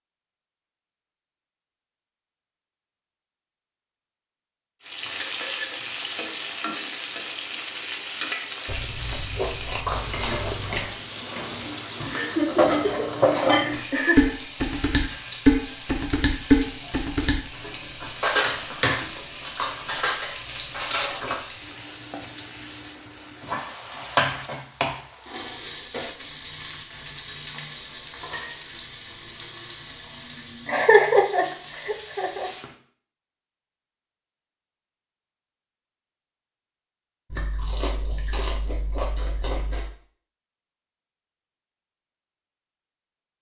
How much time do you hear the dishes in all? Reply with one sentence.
The dishes can be heard for 10 seconds in total.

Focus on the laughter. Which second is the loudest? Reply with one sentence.
The volume of the laughter peaks at 31 seconds.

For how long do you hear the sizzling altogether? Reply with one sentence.
The sizzling can be heard for 28 seconds in total.